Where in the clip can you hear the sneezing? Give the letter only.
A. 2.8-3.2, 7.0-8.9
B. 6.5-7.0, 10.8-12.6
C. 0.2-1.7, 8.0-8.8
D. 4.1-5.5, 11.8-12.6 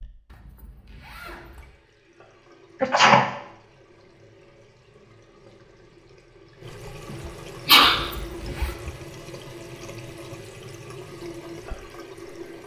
A.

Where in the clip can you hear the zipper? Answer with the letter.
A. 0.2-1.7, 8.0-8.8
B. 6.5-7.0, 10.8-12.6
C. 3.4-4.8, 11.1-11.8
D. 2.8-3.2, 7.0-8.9
A.